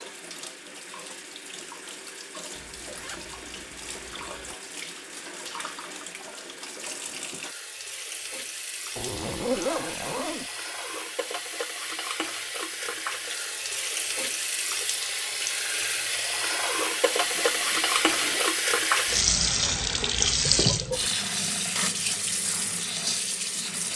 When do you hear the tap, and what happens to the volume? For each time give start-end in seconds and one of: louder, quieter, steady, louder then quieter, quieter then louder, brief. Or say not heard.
0.0-23.9 louder.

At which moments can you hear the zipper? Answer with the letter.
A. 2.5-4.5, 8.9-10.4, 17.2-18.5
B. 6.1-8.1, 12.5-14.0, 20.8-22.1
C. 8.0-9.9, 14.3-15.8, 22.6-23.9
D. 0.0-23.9
A.